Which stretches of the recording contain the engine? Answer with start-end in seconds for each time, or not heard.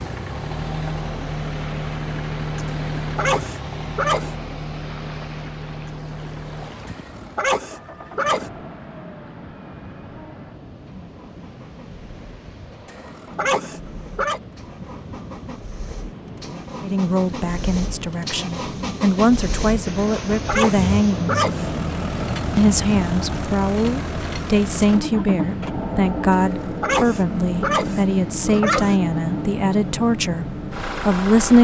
0.0-31.5.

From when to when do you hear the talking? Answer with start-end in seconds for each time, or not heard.
16.8-21.4, 22.6-31.5.